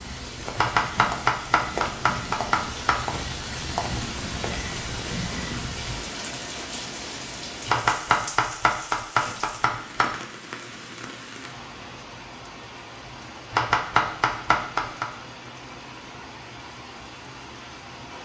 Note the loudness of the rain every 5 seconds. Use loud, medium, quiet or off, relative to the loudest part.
loud, loud, medium, medium.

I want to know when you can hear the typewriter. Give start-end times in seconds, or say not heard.
0.6-3.0, 7.7-10.2, 13.5-15.1.